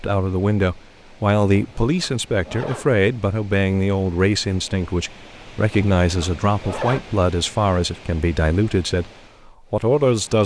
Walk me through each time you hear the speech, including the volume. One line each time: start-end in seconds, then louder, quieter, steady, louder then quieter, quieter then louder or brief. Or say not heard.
0.0-10.4 steady.